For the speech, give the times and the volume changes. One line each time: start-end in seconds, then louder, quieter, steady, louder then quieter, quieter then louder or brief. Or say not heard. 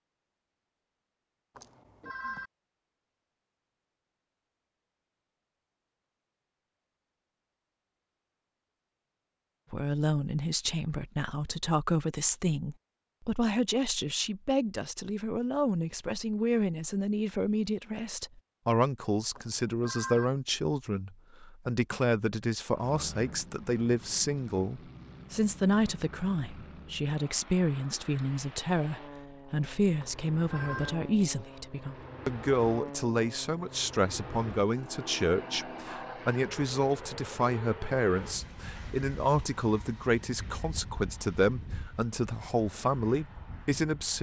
9.7-44.1 steady.